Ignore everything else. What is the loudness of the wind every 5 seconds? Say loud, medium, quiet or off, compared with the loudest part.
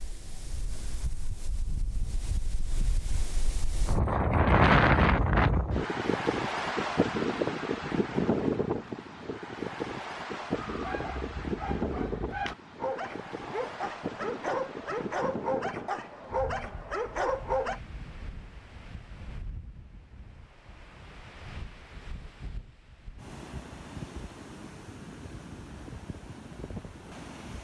loud, loud, medium, quiet, quiet, quiet.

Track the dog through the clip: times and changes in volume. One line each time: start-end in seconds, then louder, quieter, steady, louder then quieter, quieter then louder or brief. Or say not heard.
10.4-17.8 louder.